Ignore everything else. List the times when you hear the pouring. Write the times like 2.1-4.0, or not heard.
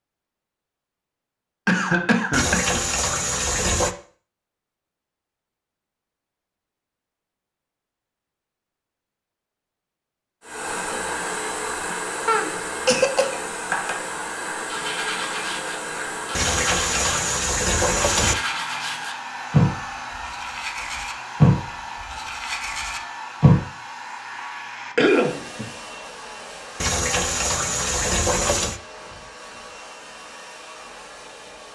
2.3-4.0, 16.4-18.4, 26.8-28.8.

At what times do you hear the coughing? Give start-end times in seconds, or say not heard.
1.6-2.8, 12.2-13.3, 24.9-25.7.